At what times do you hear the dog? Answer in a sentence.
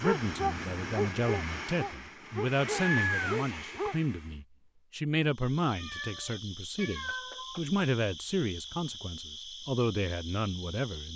You can hear the dog from 0.0 to 4.0 s.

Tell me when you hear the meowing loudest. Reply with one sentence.
The volume of the meowing peaks at 3 seconds.